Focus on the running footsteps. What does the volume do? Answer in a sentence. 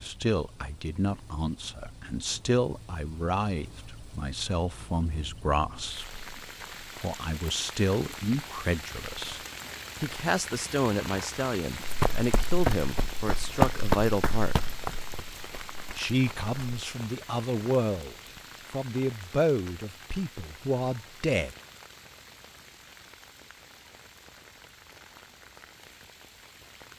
The loudness of the running footsteps goes up, then down.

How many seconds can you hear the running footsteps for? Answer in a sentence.
You can hear the running footsteps for 5 seconds altogether.